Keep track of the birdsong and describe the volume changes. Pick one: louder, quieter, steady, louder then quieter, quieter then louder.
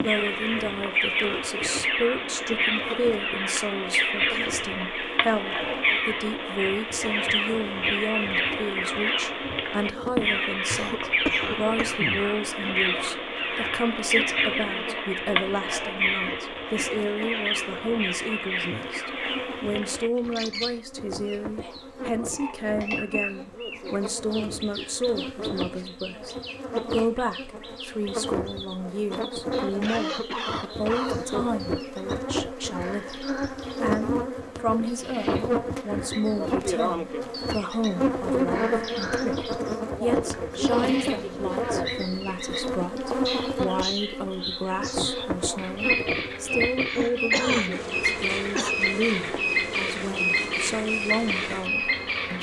quieter then louder.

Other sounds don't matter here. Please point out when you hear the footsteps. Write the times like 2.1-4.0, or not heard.
not heard.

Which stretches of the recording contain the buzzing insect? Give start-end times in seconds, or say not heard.
0.0-52.3.